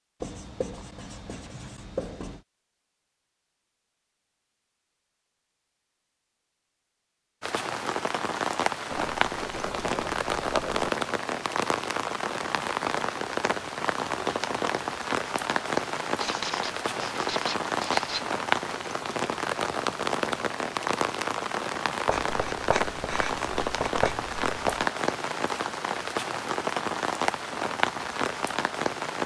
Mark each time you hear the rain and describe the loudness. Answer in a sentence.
You can hear the rain from 7.4 to 29.2 s, at a steady volume.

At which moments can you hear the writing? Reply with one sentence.
You can hear the writing from 0.2 to 2.5 s, from 8.9 to 10.9 s, from 16.1 to 18.4 s and from 22.1 to 24.9 s.